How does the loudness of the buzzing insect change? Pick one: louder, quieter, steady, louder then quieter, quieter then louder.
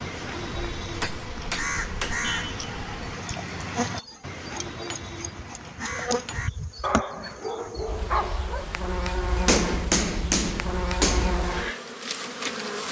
louder.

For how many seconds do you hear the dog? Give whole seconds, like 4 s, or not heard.
2 s.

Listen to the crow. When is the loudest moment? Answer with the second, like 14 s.
2 s.